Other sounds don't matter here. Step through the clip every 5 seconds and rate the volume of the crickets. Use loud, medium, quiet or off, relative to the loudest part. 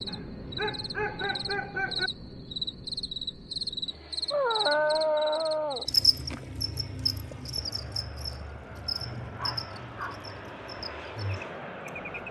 loud, loud, medium.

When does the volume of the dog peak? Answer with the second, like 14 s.
5 s.